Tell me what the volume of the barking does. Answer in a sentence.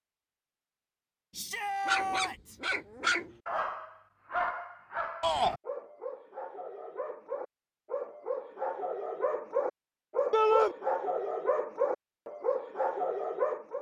The volume of the barking goes down, then up.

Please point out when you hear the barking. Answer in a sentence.
You can hear the barking from 1.9 to 13.7 s.